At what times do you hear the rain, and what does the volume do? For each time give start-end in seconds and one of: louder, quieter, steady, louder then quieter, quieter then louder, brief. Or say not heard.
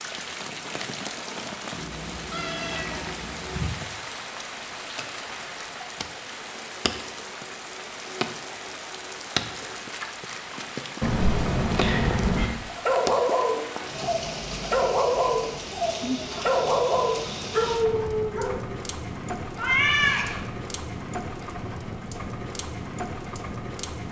0.0-24.0 steady.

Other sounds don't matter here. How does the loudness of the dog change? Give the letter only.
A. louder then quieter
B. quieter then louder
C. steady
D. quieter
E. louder
C.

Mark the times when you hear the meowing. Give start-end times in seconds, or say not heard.
1.8-3.7, 11.0-12.5, 19.6-20.4.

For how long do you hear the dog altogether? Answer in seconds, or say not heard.
6 s.